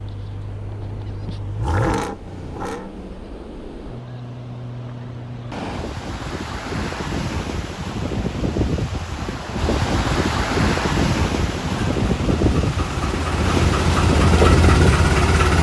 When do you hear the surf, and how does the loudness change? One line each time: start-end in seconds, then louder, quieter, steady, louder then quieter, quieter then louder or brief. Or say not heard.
0.0-15.5 louder.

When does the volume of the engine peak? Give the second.
15 s.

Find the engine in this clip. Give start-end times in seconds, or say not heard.
0.0-3.3, 11.5-15.5.